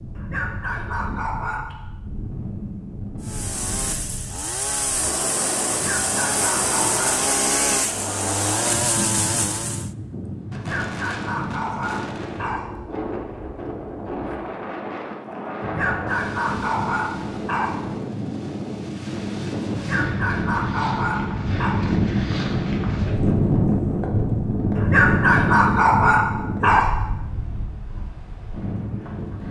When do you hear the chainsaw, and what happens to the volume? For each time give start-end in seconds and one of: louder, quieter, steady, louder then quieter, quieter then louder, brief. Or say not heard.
3.2-9.9 louder.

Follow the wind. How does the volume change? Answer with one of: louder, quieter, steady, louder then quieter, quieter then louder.
louder.